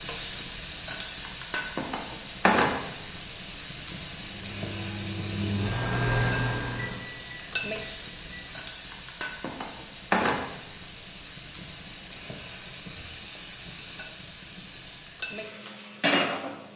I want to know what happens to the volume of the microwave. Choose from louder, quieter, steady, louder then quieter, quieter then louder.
louder then quieter.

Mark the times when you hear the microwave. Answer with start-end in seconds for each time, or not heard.
4.2-8.7.